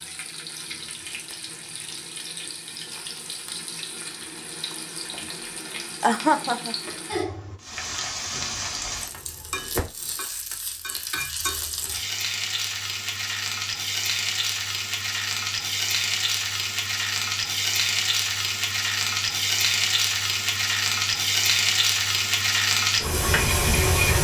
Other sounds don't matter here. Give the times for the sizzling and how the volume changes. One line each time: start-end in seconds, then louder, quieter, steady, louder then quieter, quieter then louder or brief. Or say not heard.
0.0-24.1 louder.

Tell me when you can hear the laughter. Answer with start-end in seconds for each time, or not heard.
6.0-6.8.